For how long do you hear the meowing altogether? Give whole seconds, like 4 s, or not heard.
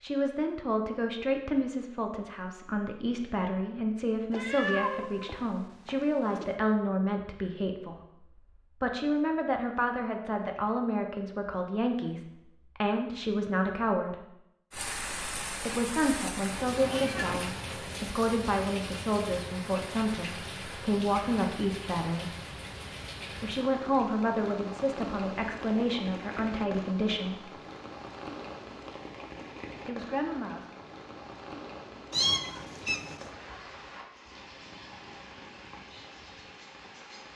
4 s.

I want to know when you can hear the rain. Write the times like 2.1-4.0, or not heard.
14.7-37.3.